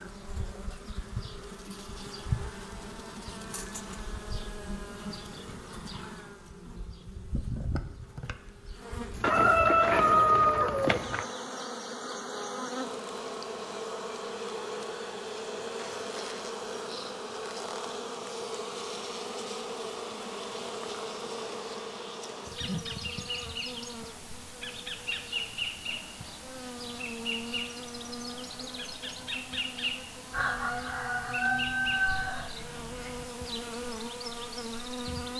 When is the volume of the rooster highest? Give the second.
10 s.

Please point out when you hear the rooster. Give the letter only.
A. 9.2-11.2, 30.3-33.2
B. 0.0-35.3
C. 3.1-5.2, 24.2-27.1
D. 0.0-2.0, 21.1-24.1
A.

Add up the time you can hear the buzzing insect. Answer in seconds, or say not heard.
35 s.